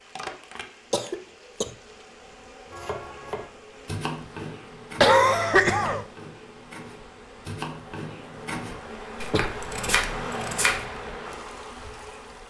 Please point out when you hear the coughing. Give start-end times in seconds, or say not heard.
0.9-1.7, 5.0-6.0, 9.2-9.7.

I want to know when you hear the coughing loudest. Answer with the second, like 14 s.
5 s.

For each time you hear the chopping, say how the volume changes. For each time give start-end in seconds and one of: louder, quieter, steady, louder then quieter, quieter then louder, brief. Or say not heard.
2.7-10.8 quieter then louder.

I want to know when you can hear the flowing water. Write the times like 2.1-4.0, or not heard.
0.0-12.4.